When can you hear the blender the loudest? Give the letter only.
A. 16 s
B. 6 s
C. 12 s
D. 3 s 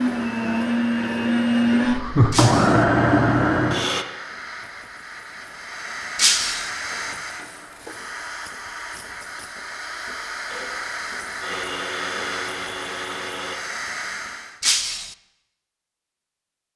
D.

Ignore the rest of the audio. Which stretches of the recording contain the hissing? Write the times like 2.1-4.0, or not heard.
0.0-14.6.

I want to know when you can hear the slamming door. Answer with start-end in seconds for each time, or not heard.
not heard.